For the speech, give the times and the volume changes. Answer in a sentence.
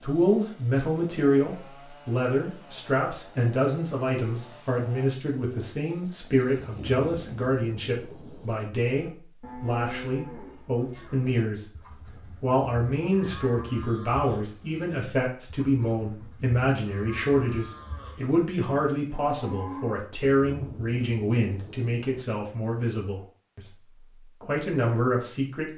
You can hear the speech from 0.0 to 25.7 s, at a steady volume.